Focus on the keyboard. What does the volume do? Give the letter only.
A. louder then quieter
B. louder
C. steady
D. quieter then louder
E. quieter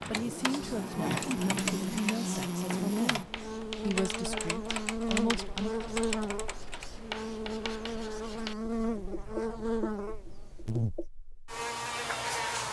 C.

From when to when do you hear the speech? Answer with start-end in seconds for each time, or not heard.
0.1-5.7.